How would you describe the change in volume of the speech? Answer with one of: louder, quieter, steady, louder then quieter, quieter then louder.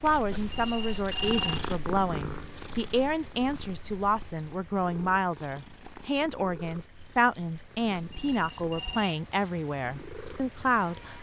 steady.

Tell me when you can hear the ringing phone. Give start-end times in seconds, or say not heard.
0.3-1.7, 7.9-9.2.